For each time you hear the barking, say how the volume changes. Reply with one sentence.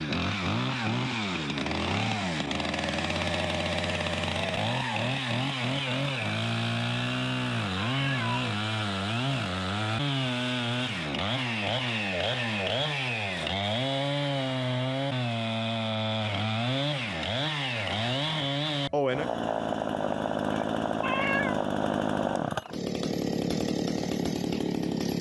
The barking can't be heard in this clip.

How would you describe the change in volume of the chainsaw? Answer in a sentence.
The volume of the chainsaw stays about the same.